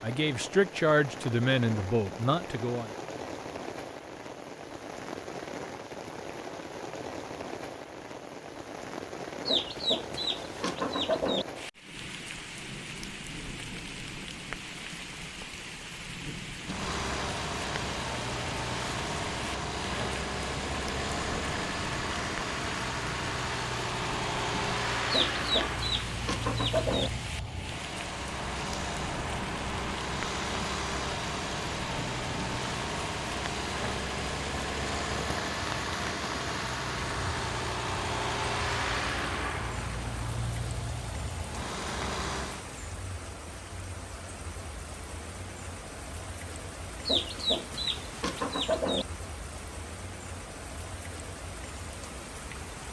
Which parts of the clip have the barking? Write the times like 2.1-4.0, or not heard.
not heard.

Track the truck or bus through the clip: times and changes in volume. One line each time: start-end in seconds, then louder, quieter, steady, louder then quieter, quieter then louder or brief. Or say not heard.
16.6-42.6 steady.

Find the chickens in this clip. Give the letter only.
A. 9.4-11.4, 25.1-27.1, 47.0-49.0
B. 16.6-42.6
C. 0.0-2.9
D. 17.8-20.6
A.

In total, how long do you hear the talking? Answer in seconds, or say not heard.
3 s.